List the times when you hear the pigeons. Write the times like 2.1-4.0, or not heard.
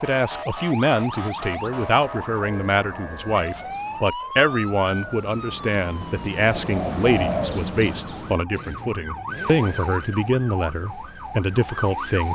1.1-8.3.